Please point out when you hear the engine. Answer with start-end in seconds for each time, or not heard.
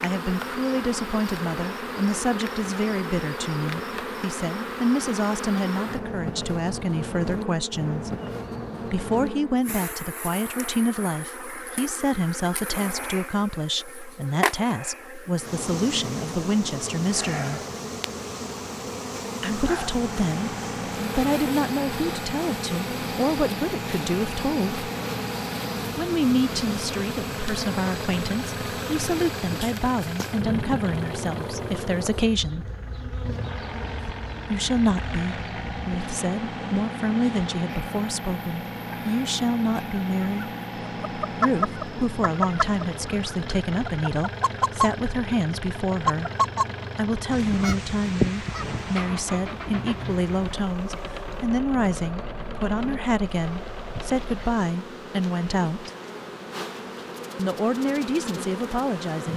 19.9-54.5.